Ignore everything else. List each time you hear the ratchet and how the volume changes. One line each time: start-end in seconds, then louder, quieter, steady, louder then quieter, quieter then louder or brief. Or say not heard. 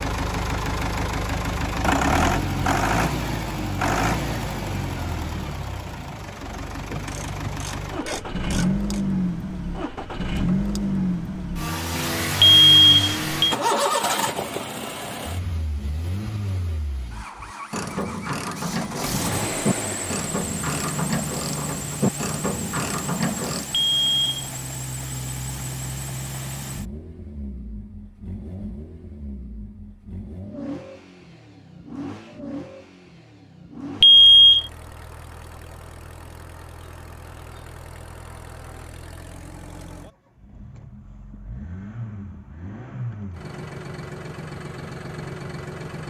6.9-9.1 brief
17.4-23.6 steady.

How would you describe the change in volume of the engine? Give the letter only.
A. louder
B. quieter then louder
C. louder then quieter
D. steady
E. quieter
E.